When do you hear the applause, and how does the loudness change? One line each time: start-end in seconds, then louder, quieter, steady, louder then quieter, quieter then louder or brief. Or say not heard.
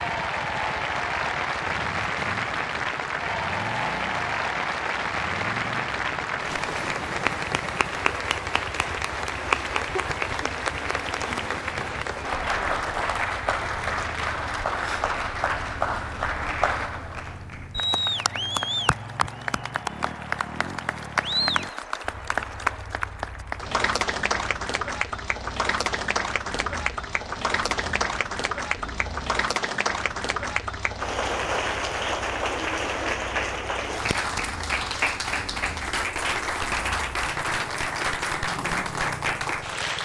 0.0-40.0 steady.